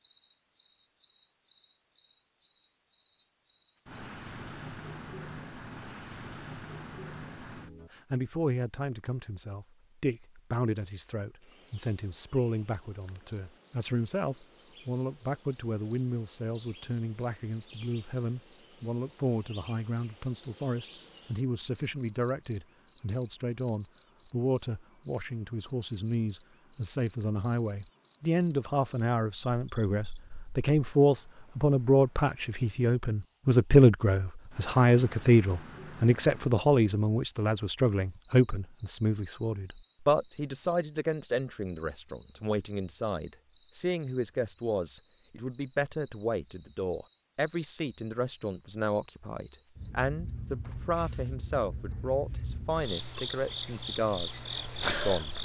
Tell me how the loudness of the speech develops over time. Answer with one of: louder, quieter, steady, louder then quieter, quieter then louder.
louder then quieter.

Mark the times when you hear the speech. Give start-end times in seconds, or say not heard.
7.9-55.3.